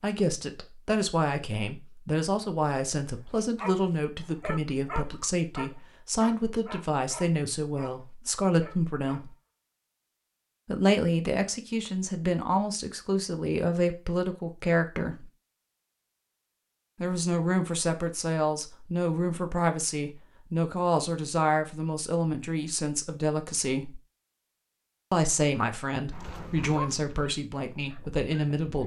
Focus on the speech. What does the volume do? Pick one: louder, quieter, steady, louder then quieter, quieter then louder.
steady.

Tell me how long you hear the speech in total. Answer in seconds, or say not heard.
25 s.